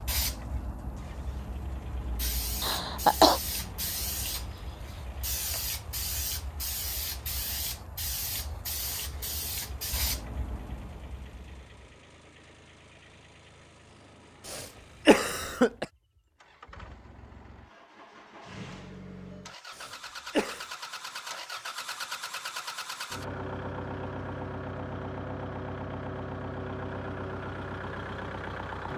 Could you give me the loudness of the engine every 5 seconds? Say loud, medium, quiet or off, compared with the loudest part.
quiet, quiet, quiet, medium, loud, loud.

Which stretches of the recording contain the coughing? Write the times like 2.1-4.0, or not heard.
2.6-3.4, 14.4-15.8, 19.8-20.6.